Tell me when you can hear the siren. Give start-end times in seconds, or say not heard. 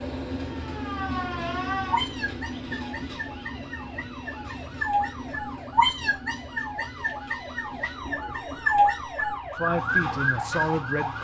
0.3-11.1.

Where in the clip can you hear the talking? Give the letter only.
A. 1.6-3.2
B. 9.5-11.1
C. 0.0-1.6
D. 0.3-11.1
B.